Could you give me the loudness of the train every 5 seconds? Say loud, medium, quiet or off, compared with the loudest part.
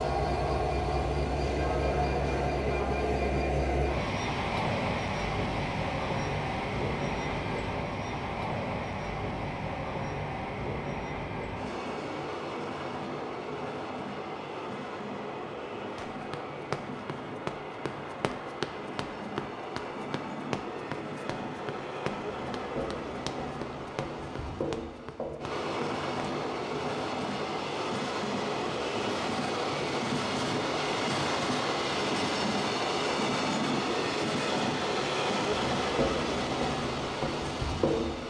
loud, loud, medium, medium, medium, loud, loud, loud.